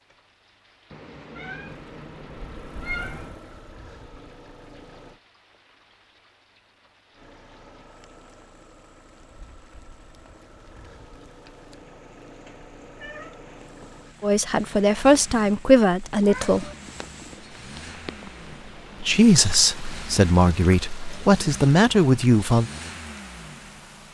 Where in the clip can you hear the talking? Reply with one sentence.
The talking can be heard from 14.2 to 16.6 s and from 19.0 to 22.7 s.